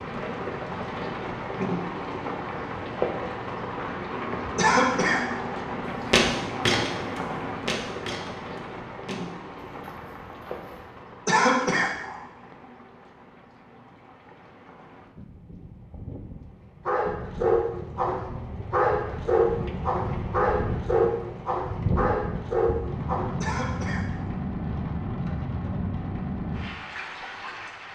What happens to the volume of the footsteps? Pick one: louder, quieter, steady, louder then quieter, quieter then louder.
quieter.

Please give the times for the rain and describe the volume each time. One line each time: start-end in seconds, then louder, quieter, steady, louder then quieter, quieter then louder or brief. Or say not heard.
0.0-27.9 quieter then louder.